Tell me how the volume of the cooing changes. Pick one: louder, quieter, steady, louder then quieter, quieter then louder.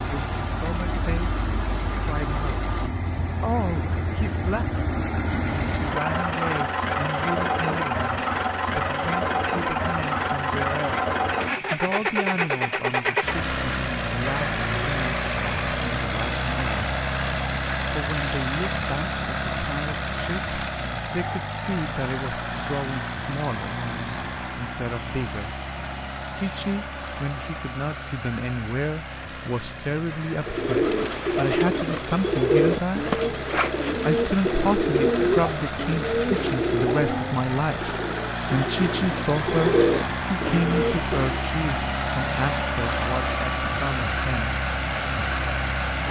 quieter then louder.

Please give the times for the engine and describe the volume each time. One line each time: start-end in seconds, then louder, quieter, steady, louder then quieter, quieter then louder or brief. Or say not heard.
0.0-46.0 quieter then louder.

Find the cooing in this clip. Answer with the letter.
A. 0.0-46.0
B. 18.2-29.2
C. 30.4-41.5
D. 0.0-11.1
C.